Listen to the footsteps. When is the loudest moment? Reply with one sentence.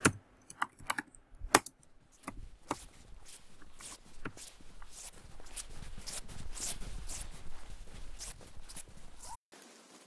The loudest moment of the footsteps is at 7 seconds.